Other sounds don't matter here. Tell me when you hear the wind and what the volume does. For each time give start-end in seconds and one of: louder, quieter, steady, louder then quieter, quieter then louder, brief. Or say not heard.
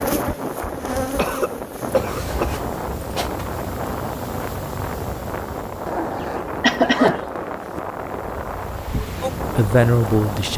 0.0-10.5 steady.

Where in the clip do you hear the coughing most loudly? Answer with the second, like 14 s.
7 s.